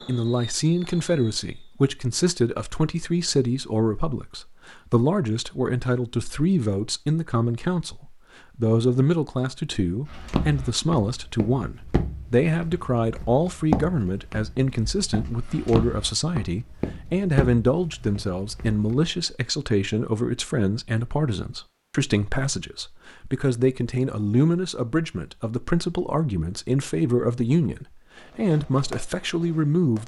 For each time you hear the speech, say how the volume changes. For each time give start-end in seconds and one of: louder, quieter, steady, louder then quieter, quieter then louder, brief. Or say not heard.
0.1-30.0 steady.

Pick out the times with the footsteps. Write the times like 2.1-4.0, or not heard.
10.1-19.1.